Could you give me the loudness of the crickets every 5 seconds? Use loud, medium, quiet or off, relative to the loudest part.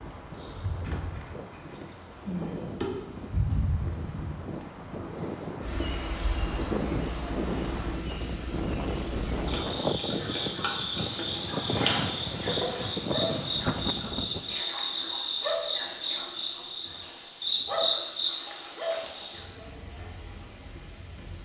loud, medium, medium, medium, medium.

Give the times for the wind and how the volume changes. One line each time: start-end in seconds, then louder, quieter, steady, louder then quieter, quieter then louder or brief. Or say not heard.
0.0-14.6 louder.